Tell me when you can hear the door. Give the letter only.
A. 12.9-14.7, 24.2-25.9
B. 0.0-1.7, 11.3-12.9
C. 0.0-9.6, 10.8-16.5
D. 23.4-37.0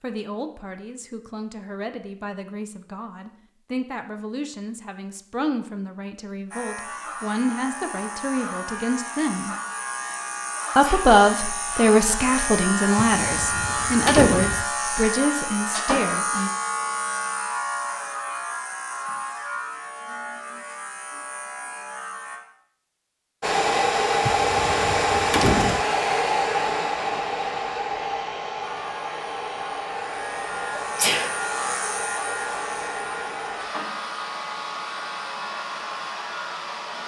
A.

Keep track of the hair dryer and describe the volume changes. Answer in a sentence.
The loudness of the hair dryer goes down.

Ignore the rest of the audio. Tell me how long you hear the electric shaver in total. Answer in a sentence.
You can hear the electric shaver for 24 seconds altogether.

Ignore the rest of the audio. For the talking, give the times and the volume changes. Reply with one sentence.
You can hear the talking from 0.0 to 9.6 s, getting louder; and from 10.8 to 16.5 s, getting quieter.